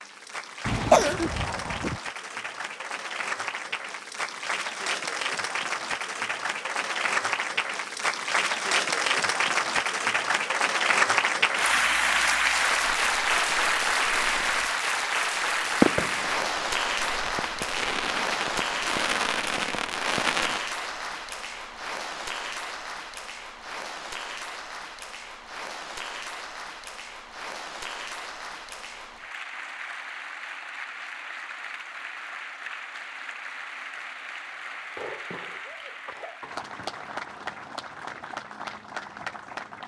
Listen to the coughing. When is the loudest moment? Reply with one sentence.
The loudest moment of the coughing is at 1 second.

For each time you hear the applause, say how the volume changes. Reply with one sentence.
The applause can be heard from 0.0 to 39.8 s, getting louder then quieter.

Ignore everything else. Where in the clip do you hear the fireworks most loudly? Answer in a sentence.
The volume of the fireworks peaks at 16 seconds.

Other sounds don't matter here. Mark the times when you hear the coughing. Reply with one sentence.
You can hear the coughing from 0.7 to 2.0 s and from 35.0 to 36.6 s.